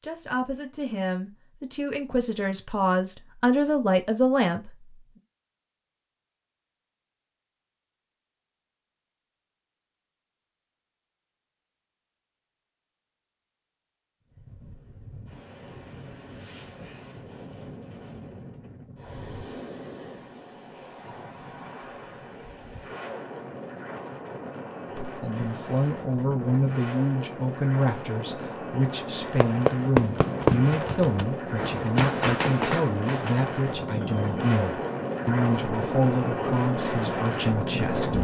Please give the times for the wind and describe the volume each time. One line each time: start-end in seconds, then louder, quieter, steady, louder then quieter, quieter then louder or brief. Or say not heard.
14.2-38.1 louder.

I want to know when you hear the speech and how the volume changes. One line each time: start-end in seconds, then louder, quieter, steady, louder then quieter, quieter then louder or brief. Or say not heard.
0.0-5.0 louder
24.9-38.1 steady.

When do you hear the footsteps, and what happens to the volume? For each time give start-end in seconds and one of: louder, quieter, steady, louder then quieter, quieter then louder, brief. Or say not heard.
not heard.